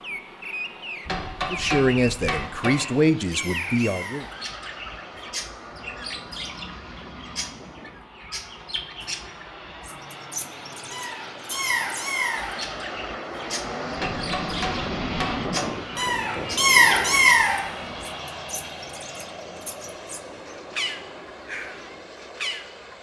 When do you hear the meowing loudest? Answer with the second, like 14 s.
17 s.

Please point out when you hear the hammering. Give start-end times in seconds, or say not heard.
1.1-2.8, 13.9-15.8.